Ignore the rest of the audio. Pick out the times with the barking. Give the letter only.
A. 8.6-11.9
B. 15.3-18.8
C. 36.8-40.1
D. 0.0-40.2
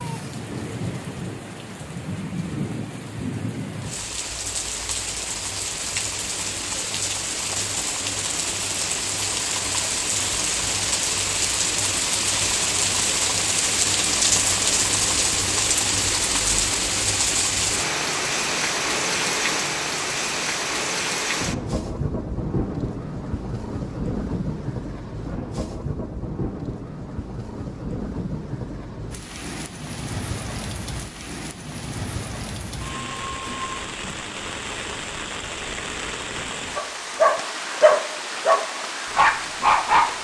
C.